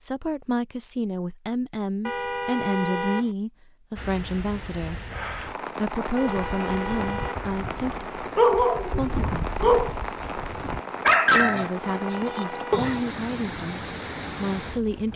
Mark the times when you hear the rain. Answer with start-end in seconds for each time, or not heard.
4.0-15.1.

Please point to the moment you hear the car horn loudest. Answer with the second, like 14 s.
3 s.